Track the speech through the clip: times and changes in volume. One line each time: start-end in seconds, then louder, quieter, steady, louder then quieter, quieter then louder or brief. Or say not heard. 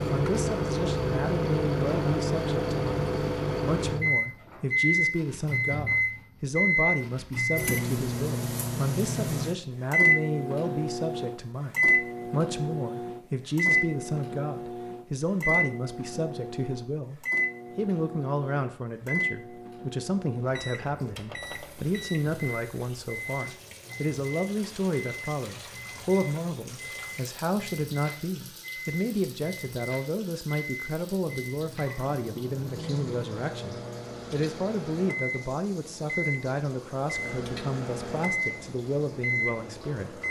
0.1-40.2 steady.